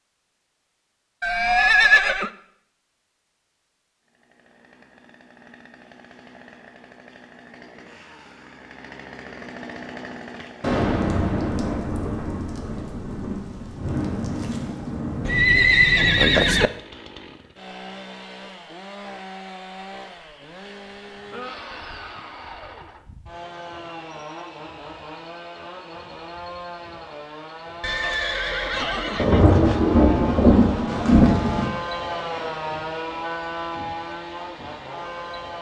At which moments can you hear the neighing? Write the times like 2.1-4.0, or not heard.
1.2-2.3, 15.2-16.7, 27.8-29.9.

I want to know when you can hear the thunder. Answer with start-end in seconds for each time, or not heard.
10.6-15.6, 29.1-31.7.